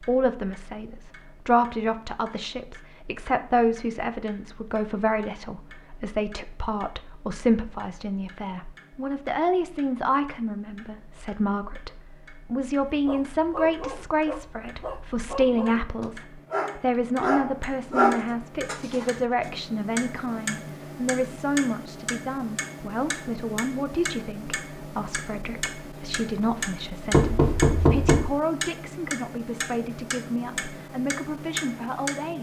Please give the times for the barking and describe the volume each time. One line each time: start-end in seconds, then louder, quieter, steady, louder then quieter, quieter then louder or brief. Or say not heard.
12.9-19.1 louder.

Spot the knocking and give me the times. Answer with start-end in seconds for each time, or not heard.
27.1-28.2.